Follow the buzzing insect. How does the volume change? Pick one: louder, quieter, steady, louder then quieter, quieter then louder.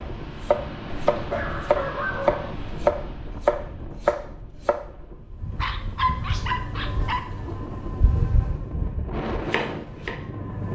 louder then quieter.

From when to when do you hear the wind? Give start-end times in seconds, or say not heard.
0.0-10.7.